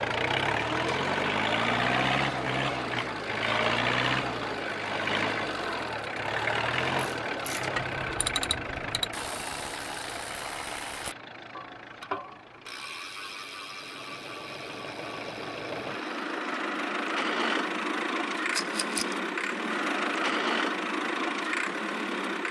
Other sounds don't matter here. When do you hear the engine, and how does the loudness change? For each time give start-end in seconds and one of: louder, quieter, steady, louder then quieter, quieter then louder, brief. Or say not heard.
0.0-22.4 quieter then louder.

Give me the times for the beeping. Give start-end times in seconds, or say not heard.
not heard.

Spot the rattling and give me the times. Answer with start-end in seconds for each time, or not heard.
18.5-19.1.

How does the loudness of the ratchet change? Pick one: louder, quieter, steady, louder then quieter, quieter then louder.
quieter.